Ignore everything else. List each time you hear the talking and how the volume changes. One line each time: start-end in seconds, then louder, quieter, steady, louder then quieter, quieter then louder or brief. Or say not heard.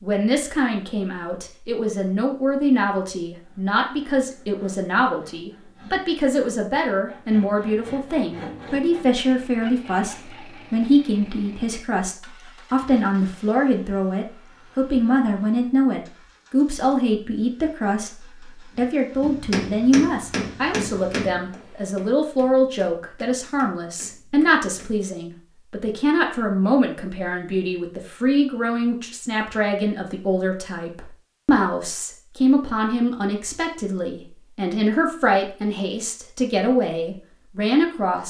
0.0-38.2 steady.